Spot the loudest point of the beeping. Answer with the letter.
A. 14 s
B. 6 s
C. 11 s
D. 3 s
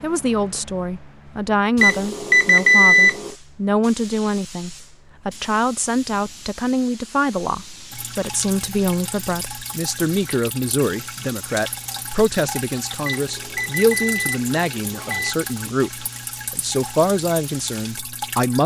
D.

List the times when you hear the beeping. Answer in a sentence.
You can hear the beeping from 1.8 to 3.4 s and from 13.1 to 15.3 s.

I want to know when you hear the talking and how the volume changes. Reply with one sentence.
You can hear the talking from 0.0 to 18.6 s, at a steady volume.